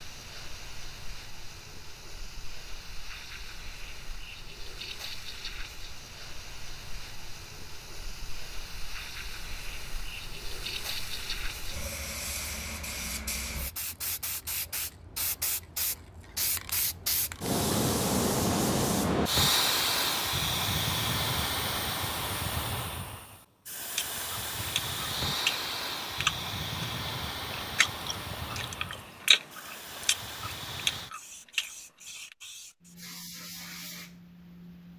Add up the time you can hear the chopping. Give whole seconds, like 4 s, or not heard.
not heard.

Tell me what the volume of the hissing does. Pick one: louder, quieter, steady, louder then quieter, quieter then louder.
louder then quieter.